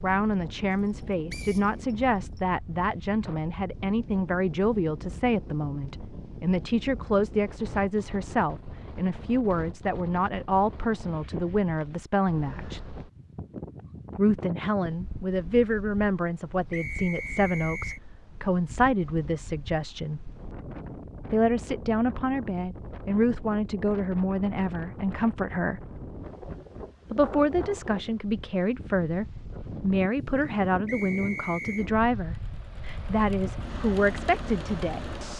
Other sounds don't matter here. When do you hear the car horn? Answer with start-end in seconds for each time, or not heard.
not heard.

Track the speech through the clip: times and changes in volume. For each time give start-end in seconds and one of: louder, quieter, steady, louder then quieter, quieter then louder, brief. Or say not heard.
0.0-12.8 steady
14.2-20.3 steady
21.3-25.9 steady
27.1-35.3 steady.